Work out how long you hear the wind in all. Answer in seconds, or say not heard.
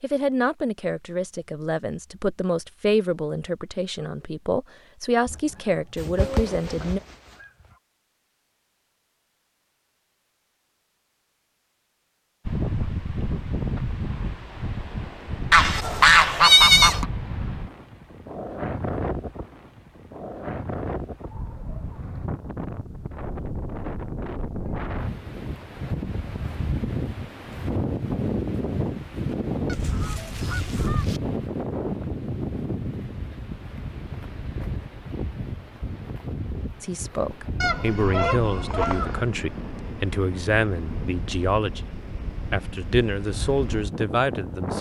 32 s.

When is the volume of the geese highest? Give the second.
17 s.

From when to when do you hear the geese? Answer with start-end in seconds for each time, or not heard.
5.2-7.5, 15.5-17.1, 29.6-31.2, 37.6-39.2.